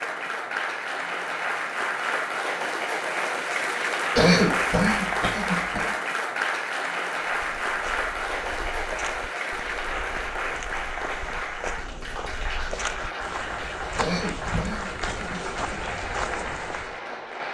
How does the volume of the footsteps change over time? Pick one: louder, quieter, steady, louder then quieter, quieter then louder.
louder.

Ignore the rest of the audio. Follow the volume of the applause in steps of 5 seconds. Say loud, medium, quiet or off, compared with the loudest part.
loud, loud, medium, medium.